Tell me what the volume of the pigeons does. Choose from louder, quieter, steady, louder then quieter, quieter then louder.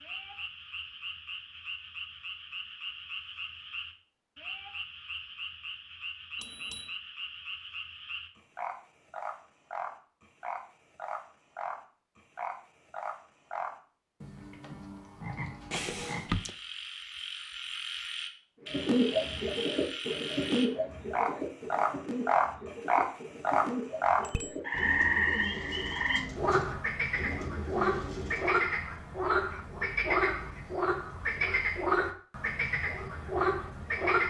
quieter.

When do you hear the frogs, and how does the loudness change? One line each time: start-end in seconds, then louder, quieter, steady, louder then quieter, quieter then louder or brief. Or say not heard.
0.0-34.2 louder.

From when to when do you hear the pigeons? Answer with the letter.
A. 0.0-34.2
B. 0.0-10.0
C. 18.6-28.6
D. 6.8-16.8
C.